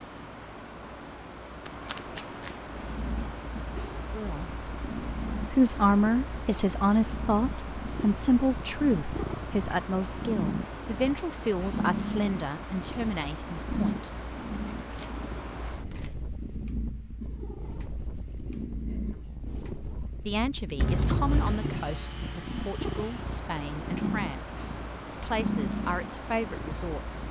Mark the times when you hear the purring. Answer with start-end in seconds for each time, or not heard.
2.6-27.2.